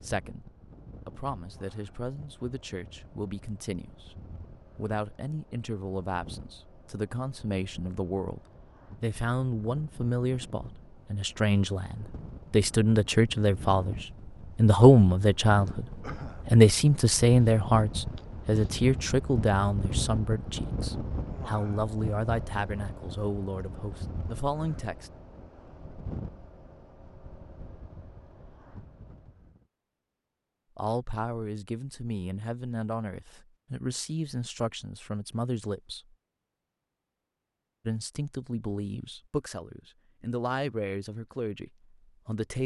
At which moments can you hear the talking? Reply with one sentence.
The talking can be heard from 0.0 to 15.8 s, from 16.4 to 25.1 s, from 30.8 to 36.1 s and from 37.9 to 42.6 s.